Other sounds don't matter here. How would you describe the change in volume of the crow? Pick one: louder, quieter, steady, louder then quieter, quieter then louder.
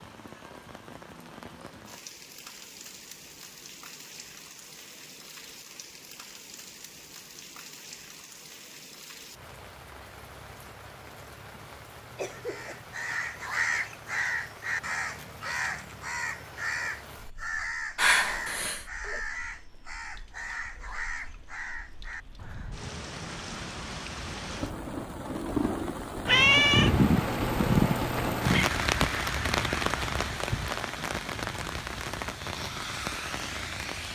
quieter.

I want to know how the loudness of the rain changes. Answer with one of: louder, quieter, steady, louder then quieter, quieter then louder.
louder.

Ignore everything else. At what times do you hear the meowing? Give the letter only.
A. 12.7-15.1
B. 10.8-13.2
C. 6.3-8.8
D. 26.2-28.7
D.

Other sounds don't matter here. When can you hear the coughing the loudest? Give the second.
18 s.